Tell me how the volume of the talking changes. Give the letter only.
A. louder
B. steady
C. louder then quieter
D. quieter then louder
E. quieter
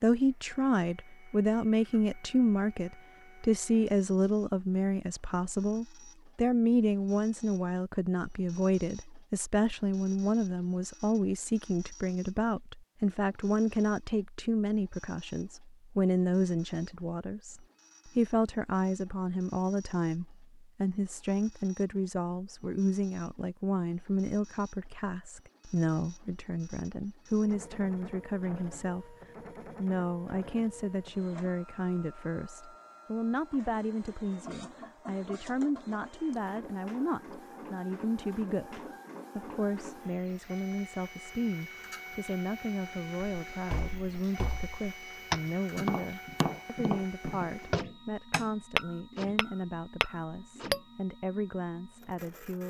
E.